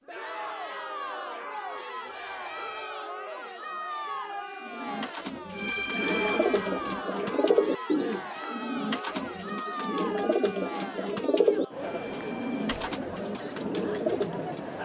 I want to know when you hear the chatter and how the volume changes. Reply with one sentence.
The chatter can be heard from 0.1 to 14.8 s, at a steady volume.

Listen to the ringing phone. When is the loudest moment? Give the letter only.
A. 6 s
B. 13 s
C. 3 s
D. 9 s
A.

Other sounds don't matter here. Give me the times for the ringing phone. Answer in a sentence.
You can hear the ringing phone from 2.0 to 3.0 s, from 5.5 to 7.0 s and from 11.8 to 12.7 s.